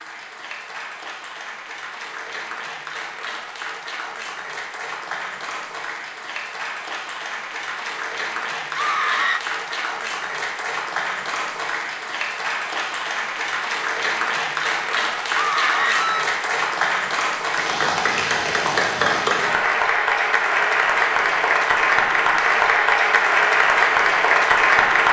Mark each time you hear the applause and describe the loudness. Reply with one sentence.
You can hear the applause from 0.0 to 25.0 s, getting louder.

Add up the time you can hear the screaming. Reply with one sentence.
You can hear the screaming for 2 seconds altogether.